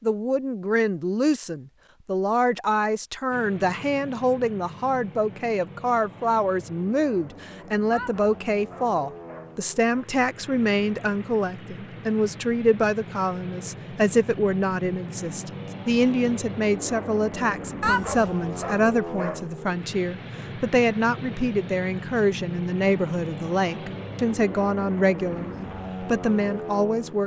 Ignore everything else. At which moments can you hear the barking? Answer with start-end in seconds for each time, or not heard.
7.9-10.1, 17.8-19.4.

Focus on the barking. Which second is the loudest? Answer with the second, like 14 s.
18 s.